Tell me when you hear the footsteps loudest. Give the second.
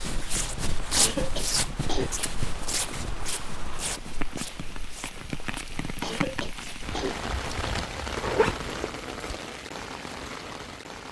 1 s.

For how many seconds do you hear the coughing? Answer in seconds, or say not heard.
2 s.